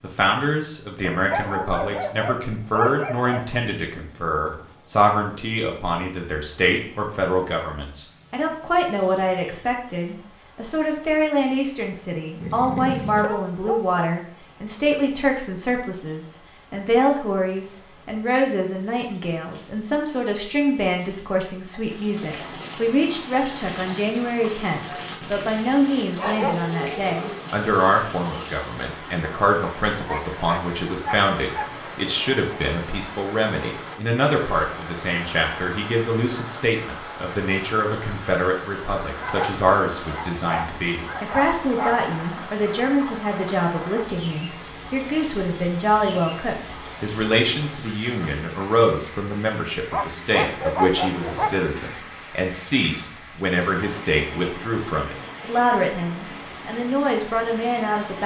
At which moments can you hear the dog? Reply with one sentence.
The dog can be heard from 1.1 to 3.6 s, from 12.4 to 14.0 s, from 26.1 to 27.4 s, from 30.1 to 31.7 s, from 39.1 to 42.0 s and from 49.9 to 51.6 s.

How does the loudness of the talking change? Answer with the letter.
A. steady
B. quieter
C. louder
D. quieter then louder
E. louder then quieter
A.